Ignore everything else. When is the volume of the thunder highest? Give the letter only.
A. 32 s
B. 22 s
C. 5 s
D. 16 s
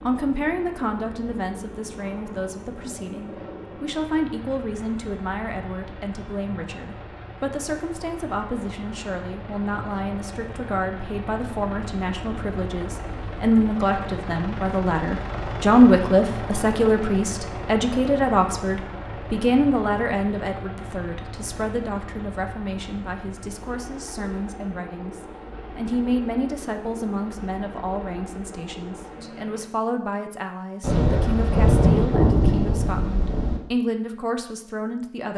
A.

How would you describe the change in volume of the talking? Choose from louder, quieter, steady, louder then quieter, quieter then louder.
louder then quieter.